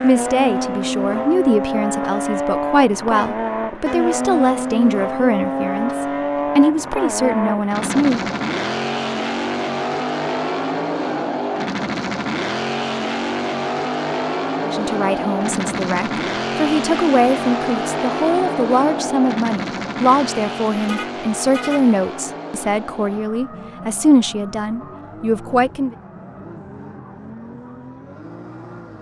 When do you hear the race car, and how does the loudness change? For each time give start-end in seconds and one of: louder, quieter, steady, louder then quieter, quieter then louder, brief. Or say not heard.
0.0-28.9 quieter.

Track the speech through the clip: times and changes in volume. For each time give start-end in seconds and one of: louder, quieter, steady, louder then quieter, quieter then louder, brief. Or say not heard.
0.0-8.2 steady
14.7-25.9 steady.